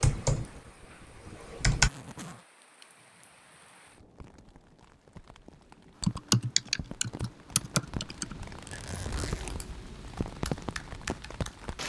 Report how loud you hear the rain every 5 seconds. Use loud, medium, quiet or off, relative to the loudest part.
quiet, medium, loud.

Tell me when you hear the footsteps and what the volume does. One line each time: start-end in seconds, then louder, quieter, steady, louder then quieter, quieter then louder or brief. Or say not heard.
not heard.